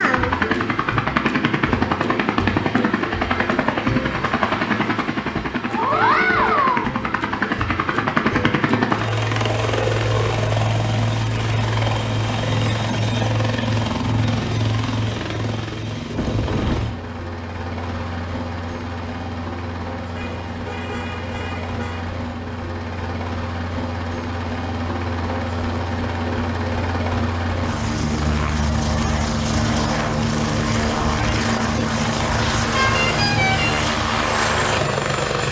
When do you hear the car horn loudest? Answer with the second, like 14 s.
33 s.